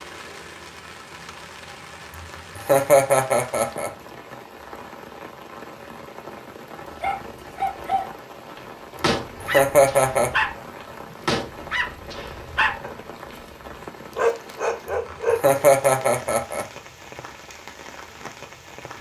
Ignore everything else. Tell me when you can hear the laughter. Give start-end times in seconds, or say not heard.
2.5-3.9, 9.4-10.3, 15.3-16.6.